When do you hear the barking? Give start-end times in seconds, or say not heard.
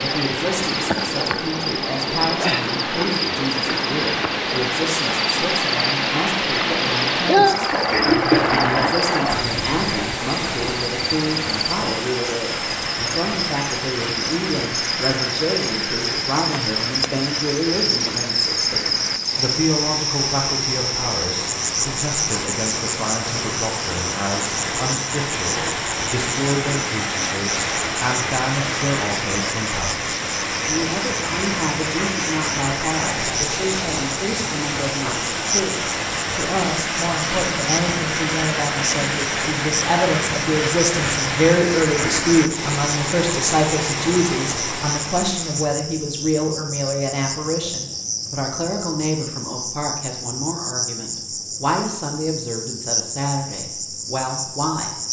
not heard.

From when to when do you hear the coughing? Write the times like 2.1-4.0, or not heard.
7.9-9.1.